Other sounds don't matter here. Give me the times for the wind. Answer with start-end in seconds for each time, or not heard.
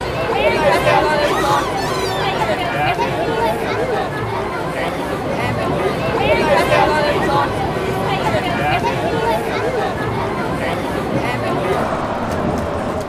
5.0-13.0.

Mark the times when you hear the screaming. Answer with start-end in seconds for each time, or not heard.
1.2-2.5.